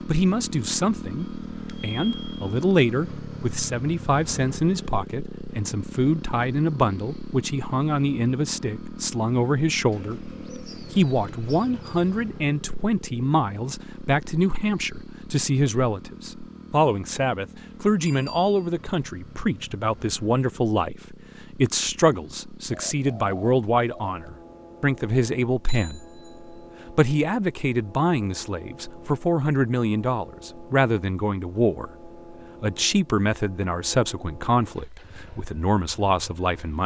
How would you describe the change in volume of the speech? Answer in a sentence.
The volume of the speech stays about the same.